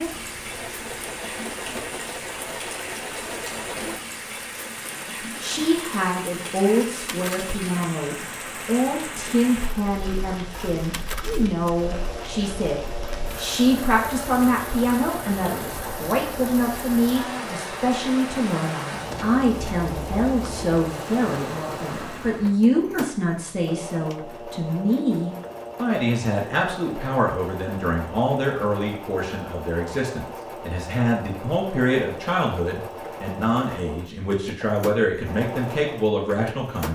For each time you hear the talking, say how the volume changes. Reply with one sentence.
The talking can be heard from 5.3 to 36.9 s, at a steady volume.